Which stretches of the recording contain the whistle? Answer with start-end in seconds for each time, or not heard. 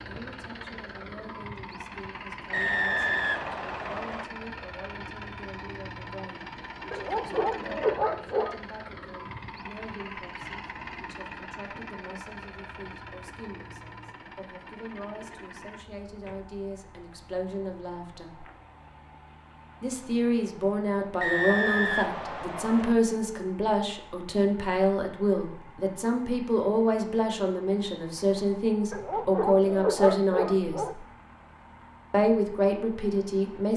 2.5-4.2, 21.2-22.9.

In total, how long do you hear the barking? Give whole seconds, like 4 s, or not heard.
4 s.